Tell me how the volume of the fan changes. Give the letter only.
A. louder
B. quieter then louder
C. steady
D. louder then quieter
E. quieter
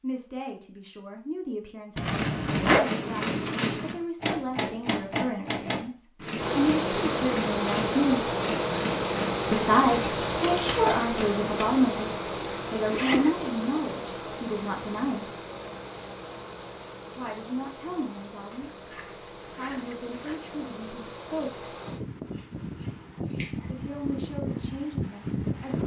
B.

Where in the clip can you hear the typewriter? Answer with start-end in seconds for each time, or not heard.
2.0-11.7.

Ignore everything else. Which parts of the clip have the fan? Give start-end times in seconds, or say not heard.
6.3-25.8.